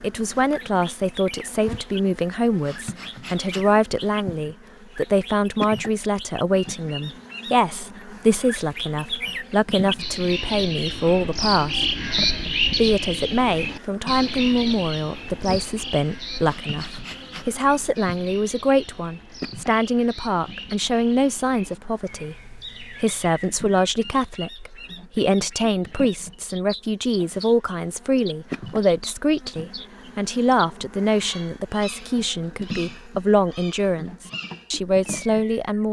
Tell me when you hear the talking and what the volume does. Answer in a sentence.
The talking can be heard from 0.0 to 35.8 s, at a steady volume.